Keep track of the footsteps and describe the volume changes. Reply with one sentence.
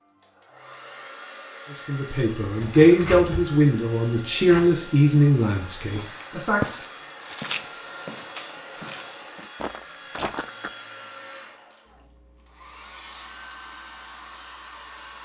The loudness of the footsteps goes down, then up.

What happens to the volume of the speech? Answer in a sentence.
The loudness of the speech goes down.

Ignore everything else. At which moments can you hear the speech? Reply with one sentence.
The speech can be heard from 1.9 to 6.8 s.